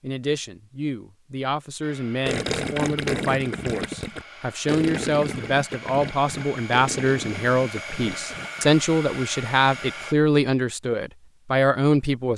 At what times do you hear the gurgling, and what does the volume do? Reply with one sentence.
The gurgling can be heard from 2.2 to 8.7 s, getting quieter.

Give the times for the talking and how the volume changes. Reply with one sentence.
You can hear the talking from 0.0 to 12.3 s, getting louder.